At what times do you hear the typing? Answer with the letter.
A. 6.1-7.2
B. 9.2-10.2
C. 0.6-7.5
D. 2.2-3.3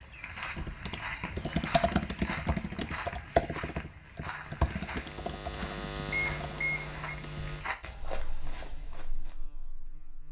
C.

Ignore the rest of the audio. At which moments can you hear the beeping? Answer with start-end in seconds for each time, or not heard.
6.1-7.2.